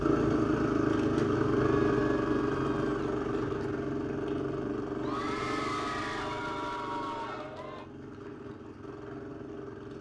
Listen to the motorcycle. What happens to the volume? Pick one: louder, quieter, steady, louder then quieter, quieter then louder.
quieter.